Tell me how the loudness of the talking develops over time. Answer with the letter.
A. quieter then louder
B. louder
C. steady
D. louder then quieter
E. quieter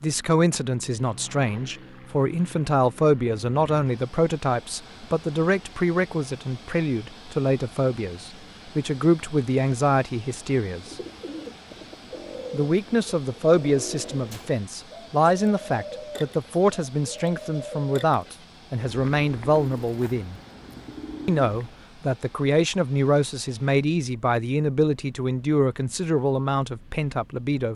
C.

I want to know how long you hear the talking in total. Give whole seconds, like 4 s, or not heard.
25 s.